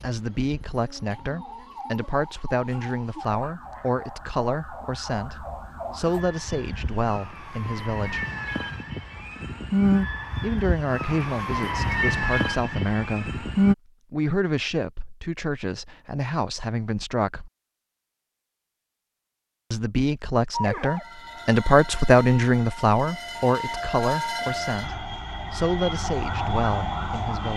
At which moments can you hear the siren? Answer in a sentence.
The siren can be heard from 0.0 to 13.8 s and from 20.5 to 27.5 s.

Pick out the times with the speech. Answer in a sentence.
The speech can be heard from 0.0 to 8.2 s, from 10.4 to 13.4 s, from 14.1 to 17.5 s and from 19.7 to 27.5 s.